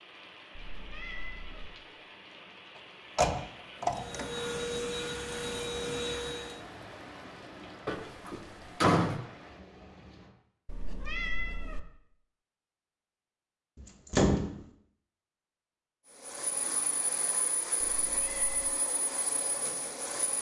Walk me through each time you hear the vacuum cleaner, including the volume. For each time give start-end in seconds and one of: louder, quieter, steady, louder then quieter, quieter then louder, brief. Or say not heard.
3.9-6.7 brief
16.1-20.3 steady.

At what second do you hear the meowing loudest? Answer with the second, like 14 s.
11 s.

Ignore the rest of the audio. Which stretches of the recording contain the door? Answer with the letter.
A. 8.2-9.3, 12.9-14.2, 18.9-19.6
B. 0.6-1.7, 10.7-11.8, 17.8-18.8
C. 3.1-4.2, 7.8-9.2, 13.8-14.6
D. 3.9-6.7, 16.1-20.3
C.